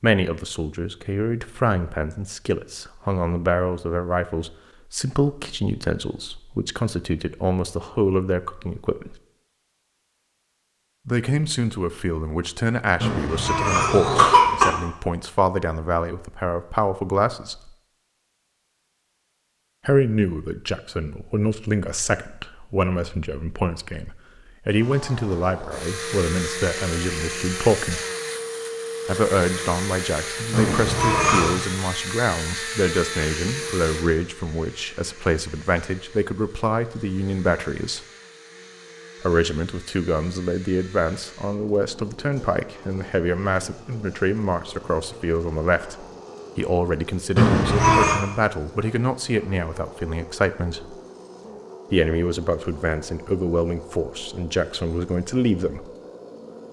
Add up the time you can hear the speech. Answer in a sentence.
You can hear the speech for 49 seconds altogether.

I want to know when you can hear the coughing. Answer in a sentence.
The coughing can be heard from 13.0 to 14.7 s, from 30.5 to 31.6 s and from 47.4 to 48.2 s.